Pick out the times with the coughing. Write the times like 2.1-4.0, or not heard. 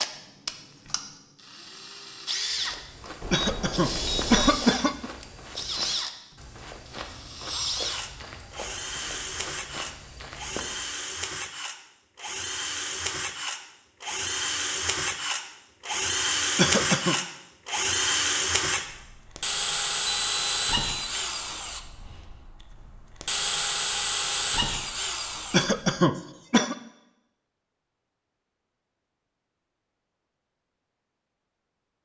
3.3-5.1, 16.6-17.1, 25.5-26.8.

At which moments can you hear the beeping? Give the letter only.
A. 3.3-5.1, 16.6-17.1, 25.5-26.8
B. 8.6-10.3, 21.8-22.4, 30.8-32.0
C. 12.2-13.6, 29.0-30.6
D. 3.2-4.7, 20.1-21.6
D.